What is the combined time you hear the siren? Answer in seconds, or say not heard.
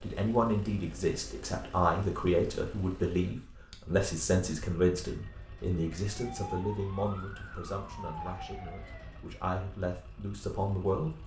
4 s.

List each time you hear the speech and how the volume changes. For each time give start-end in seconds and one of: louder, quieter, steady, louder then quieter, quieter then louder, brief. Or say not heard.
0.0-11.1 quieter.